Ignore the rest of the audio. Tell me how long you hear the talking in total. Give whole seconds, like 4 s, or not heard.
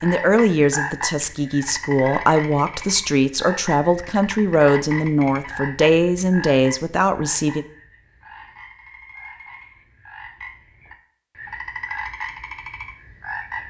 8 s.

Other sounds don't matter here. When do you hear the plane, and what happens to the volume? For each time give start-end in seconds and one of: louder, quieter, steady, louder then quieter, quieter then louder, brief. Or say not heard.
not heard.